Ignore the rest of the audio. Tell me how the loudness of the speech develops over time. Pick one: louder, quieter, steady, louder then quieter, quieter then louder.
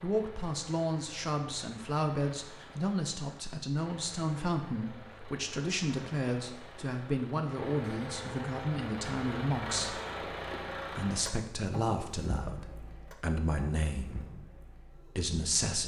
steady.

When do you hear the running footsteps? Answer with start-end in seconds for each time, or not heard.
not heard.